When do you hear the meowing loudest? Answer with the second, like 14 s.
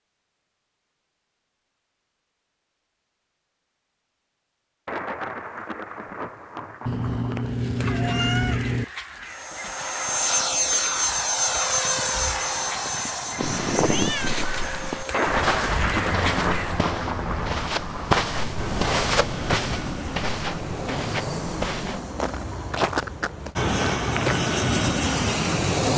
8 s.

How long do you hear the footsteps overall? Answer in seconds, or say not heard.
9 s.